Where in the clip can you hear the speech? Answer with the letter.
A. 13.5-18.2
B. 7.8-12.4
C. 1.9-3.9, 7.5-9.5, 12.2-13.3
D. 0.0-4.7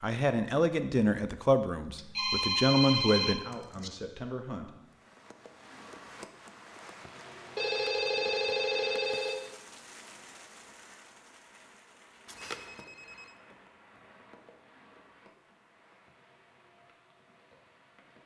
D.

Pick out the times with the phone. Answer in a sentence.
You can hear the phone from 1.9 to 3.9 s, from 7.5 to 9.5 s and from 12.2 to 13.3 s.